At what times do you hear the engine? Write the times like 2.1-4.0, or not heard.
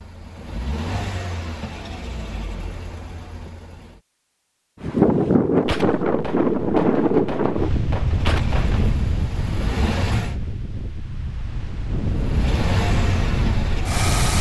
0.0-4.0, 8.2-10.3, 12.0-14.3.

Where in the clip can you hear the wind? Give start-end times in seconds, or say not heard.
4.8-14.3.